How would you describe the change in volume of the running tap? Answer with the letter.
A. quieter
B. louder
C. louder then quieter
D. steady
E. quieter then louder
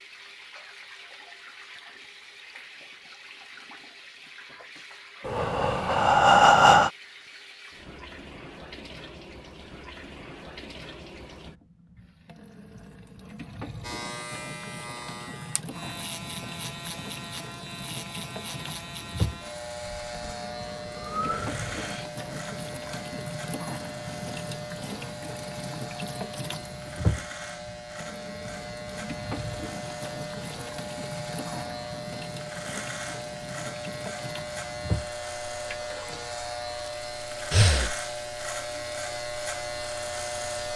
B.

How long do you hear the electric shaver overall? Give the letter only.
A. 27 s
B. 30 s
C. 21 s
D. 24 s
A.